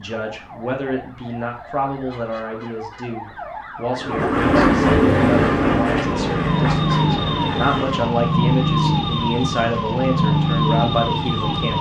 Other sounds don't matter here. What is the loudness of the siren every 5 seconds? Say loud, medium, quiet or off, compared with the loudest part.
quiet, loud, loud.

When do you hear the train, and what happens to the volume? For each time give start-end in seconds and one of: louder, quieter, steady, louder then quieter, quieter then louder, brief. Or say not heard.
4.0-8.1 quieter.